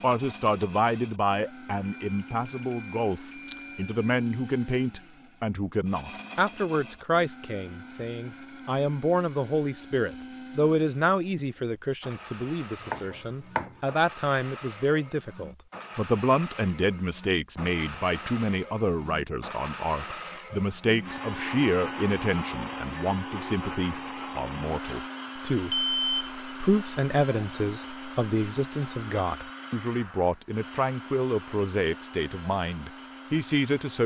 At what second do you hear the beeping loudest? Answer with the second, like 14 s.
26 s.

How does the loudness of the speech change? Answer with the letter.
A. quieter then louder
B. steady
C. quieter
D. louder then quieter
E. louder
B.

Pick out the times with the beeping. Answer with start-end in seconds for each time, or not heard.
1.9-4.0, 25.7-26.3.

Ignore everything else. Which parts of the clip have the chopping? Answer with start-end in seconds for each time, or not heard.
12.8-13.8.